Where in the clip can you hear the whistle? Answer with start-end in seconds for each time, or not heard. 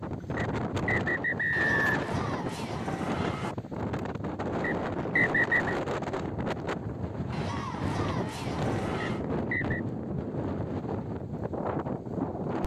0.3-2.0, 4.6-5.8, 9.0-9.8.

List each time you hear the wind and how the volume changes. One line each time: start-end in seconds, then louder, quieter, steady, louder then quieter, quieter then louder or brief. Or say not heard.
0.0-12.6 steady.